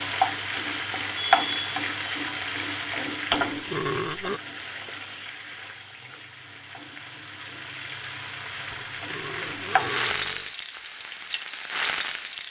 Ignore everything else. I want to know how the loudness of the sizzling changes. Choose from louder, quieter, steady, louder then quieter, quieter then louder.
quieter then louder.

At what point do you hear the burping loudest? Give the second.
4 s.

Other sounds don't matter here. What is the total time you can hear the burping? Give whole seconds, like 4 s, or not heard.
3 s.